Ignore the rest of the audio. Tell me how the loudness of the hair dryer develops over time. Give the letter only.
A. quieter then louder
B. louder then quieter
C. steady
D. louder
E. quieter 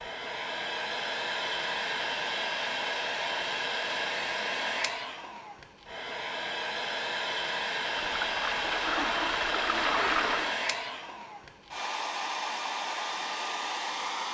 C.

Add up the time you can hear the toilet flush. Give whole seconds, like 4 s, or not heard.
3 s.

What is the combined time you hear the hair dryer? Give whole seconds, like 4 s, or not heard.
14 s.